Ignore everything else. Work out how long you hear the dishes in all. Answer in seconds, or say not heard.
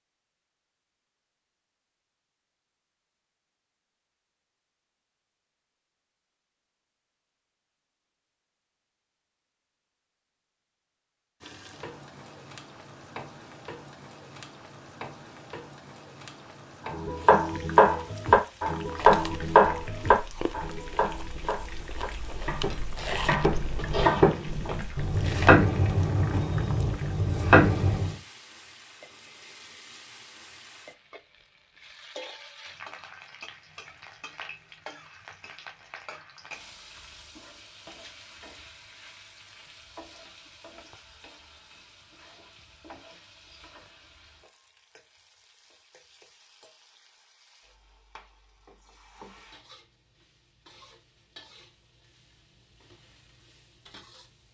not heard.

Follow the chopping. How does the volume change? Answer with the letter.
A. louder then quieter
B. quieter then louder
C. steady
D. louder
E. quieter
B.